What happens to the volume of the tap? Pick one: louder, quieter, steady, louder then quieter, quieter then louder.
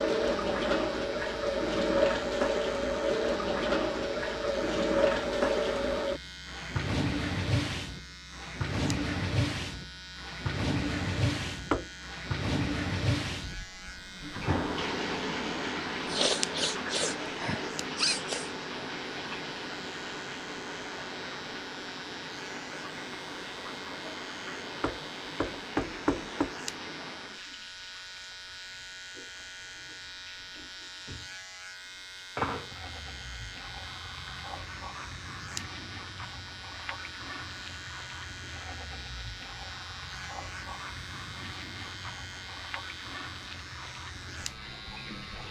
quieter.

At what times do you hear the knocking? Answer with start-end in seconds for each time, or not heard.
11.7-12.3, 24.8-26.5.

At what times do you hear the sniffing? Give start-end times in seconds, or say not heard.
16.1-18.5.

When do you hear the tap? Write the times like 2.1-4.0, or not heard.
0.0-45.4.